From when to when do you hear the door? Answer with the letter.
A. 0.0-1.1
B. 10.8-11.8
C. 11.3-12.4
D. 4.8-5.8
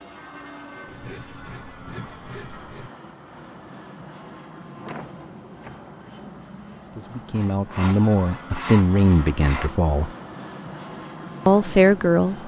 D.